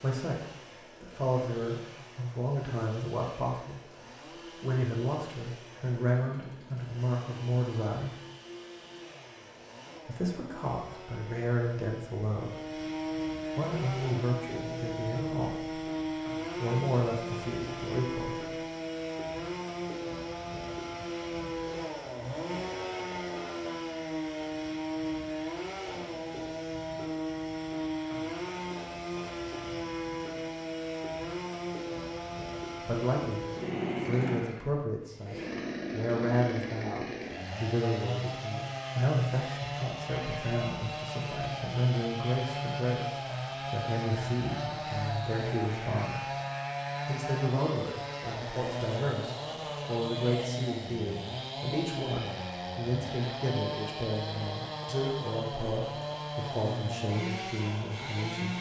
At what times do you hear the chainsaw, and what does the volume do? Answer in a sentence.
The chainsaw can be heard from 0.0 to 58.5 s, getting louder.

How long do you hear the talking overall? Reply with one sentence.
The talking can be heard for 41 seconds in total.